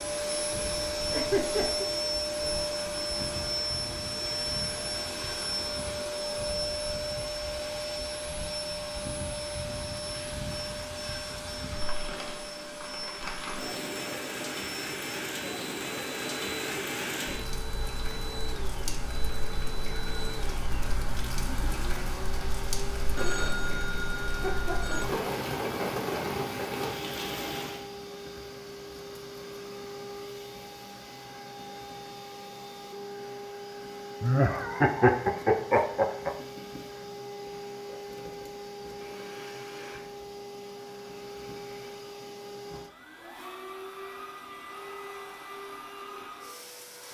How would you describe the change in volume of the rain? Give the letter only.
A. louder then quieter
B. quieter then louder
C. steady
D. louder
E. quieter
D.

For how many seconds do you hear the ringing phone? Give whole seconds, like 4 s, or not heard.
2 s.